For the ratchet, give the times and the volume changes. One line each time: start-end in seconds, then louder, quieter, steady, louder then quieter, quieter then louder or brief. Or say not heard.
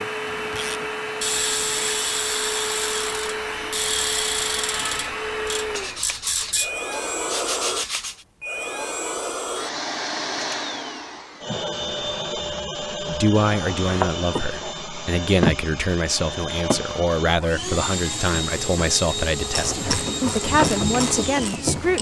0.2-6.7 quieter
19.4-21.9 brief.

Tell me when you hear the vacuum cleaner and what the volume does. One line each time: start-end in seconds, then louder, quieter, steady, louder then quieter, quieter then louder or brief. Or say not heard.
0.0-21.9 steady.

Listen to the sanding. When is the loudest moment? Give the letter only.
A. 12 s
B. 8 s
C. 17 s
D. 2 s
B.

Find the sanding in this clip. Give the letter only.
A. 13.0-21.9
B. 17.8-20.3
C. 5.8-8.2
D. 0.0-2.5
C.